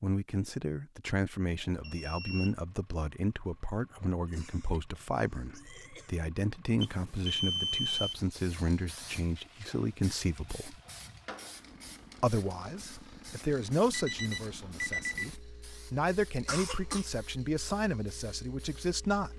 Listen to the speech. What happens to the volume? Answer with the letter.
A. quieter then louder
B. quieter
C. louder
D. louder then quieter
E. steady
E.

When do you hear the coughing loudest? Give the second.
17 s.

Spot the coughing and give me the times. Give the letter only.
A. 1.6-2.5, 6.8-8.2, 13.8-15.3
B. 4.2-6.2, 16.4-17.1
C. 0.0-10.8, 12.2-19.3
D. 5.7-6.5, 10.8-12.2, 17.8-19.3
B.